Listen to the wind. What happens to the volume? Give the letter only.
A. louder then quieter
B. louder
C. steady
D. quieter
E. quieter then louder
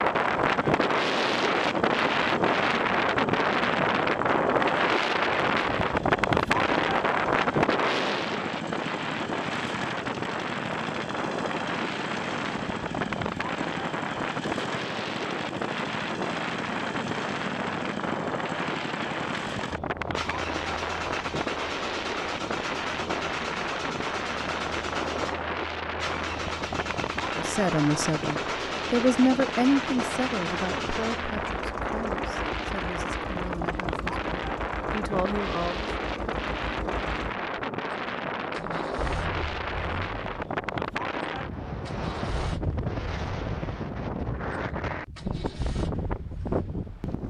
D.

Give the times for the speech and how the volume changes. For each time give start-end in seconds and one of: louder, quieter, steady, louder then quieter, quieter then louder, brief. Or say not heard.
27.4-35.9 quieter then louder.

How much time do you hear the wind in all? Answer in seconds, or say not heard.
47 s.